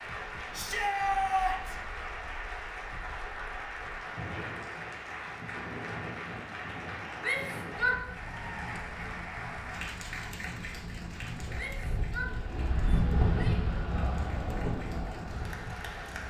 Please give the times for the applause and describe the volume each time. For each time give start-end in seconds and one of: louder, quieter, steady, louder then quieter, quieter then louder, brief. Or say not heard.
0.0-16.2 quieter.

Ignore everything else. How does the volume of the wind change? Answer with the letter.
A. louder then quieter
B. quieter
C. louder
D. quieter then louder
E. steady
C.